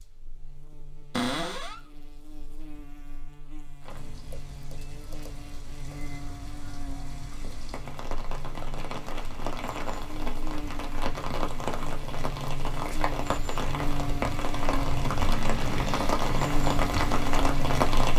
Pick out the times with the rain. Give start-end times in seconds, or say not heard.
3.8-18.1.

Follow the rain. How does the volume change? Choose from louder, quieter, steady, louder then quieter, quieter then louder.
louder.